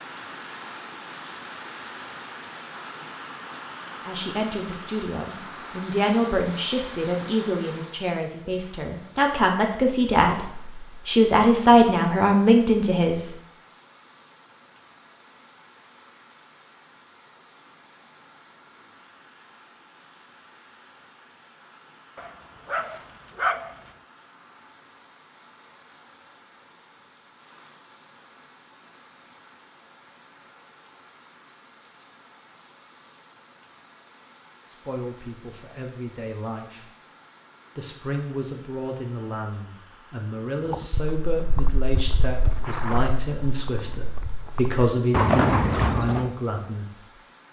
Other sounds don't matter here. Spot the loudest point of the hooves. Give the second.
45 s.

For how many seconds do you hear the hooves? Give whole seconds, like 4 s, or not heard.
6 s.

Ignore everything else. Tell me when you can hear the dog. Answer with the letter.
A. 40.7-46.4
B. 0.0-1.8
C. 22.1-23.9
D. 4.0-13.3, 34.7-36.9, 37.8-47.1
C.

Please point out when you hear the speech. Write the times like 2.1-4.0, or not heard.
4.0-13.3, 34.7-36.9, 37.8-47.1.